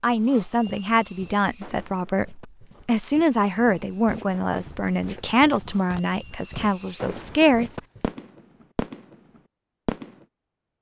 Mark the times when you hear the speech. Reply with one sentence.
You can hear the speech from 0.0 to 7.8 s.